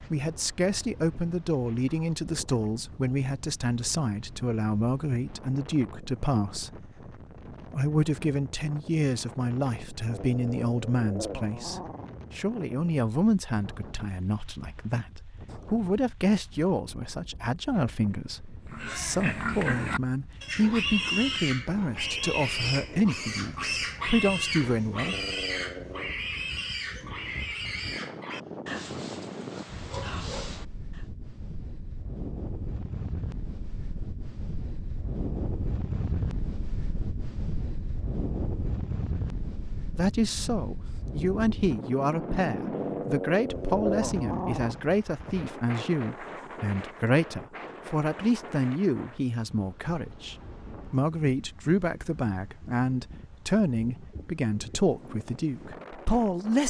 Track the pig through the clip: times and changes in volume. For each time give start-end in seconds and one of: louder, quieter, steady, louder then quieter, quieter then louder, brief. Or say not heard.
18.7-31.1 quieter.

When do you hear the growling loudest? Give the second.
44 s.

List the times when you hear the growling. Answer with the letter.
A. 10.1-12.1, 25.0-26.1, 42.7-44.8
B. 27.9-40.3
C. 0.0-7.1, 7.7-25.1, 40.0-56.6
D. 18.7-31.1
A.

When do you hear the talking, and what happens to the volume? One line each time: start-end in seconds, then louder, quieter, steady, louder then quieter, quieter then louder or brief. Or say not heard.
0.0-7.1 steady
7.7-25.1 steady
40.0-56.6 steady.